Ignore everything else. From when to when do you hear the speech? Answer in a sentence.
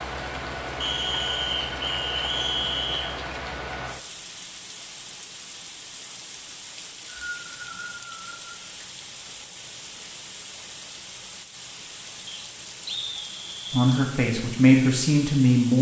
You can hear the speech from 13.7 to 15.7 s.